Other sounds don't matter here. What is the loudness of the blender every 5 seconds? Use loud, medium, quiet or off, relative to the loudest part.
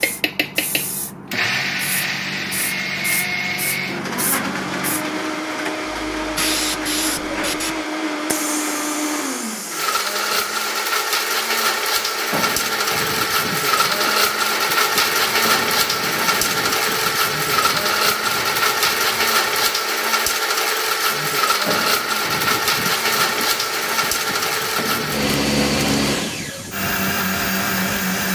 medium, medium, loud, loud, loud, loud.